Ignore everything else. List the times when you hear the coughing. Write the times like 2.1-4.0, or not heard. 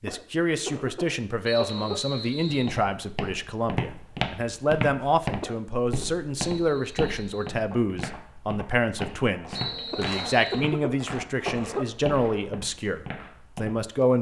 0.1-2.0, 5.4-6.0, 9.9-11.8.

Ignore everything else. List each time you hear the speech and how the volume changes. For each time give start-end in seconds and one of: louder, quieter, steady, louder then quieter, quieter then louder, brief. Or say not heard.
0.0-14.1 steady.